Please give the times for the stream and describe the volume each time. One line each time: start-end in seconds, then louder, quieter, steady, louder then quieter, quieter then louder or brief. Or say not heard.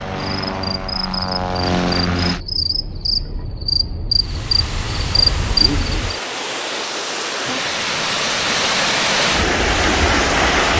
4.2-10.7 louder.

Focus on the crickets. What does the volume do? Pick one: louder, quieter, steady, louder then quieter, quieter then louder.
louder.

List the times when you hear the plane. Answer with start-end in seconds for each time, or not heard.
0.0-2.4.